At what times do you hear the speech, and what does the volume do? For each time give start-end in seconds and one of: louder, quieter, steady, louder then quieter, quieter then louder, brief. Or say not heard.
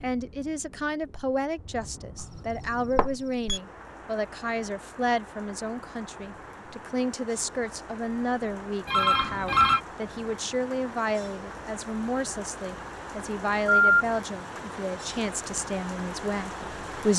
0.0-17.1 steady.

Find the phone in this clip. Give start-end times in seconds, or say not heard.
3.0-3.5, 8.8-9.8, 13.7-14.1.